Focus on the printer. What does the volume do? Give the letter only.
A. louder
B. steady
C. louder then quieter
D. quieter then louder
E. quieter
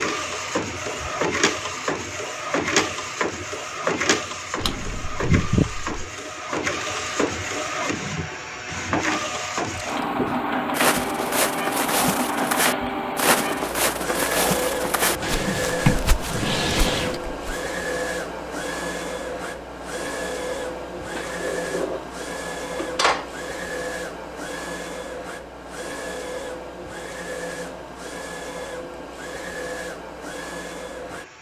E.